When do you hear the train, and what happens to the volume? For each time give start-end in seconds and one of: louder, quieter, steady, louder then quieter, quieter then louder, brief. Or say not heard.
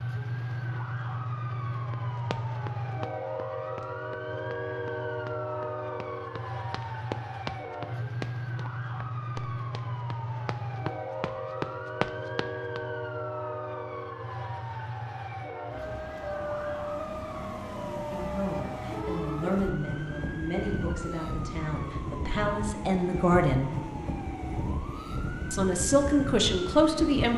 0.0-27.3 steady.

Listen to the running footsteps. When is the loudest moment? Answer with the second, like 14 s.
12 s.